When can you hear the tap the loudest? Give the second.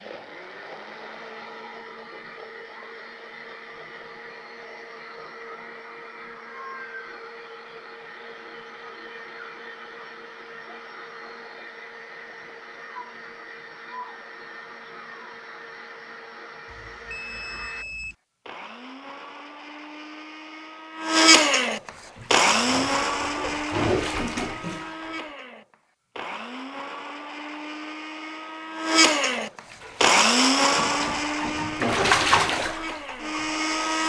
32 s.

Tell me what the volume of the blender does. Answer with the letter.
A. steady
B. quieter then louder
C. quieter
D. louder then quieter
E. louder
E.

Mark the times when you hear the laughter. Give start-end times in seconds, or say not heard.
not heard.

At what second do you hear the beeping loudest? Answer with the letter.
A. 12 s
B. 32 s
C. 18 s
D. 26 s
C.